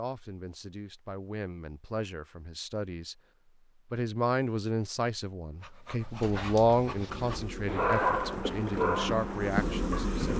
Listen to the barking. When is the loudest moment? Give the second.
8 s.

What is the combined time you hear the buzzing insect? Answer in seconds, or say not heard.
3 s.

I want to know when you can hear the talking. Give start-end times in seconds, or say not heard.
0.0-3.1, 3.9-10.3.